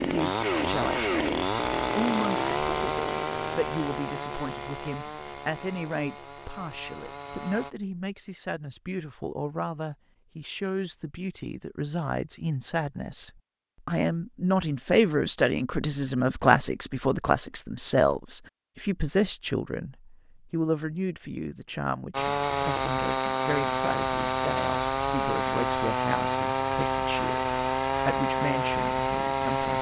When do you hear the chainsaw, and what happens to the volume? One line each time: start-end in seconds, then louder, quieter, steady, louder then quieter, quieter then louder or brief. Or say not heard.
0.0-7.8 quieter
22.1-29.7 steady.